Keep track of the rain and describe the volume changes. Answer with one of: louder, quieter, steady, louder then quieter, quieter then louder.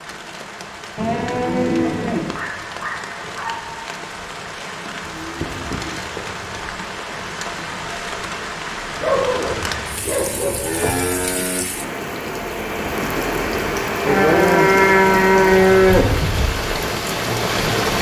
louder.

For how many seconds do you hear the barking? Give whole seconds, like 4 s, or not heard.
3 s.